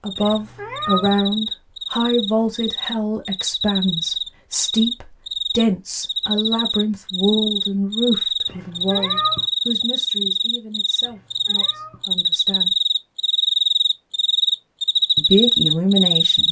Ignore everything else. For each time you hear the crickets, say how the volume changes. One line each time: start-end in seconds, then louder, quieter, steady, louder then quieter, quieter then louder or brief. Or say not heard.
0.1-16.4 louder.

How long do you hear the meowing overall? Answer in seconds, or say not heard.
3 s.